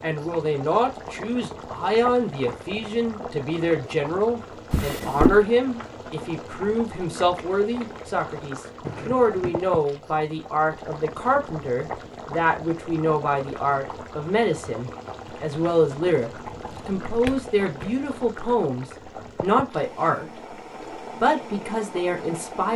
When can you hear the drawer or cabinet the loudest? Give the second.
5 s.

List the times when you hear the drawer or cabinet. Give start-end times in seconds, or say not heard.
4.7-5.5, 8.8-9.6, 16.5-17.9.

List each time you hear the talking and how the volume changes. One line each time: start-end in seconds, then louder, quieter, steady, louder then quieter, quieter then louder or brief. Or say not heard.
0.0-20.6 steady
21.2-22.7 brief.